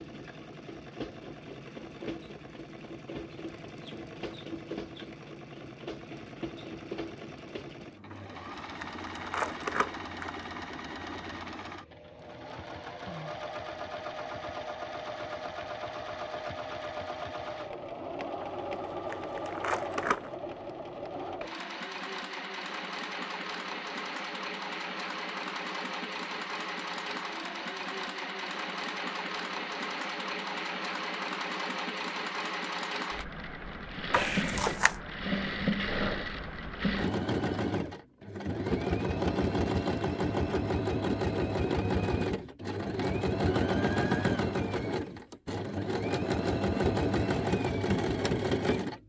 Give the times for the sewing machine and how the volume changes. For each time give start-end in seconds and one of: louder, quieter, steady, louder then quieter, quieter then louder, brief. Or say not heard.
0.0-49.0 louder.